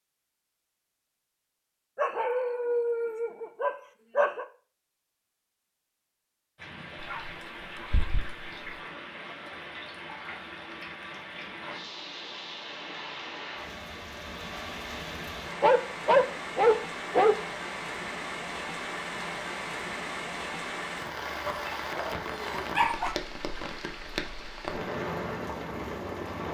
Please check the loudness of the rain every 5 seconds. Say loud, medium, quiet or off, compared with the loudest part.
off, medium, medium, loud, loud, loud.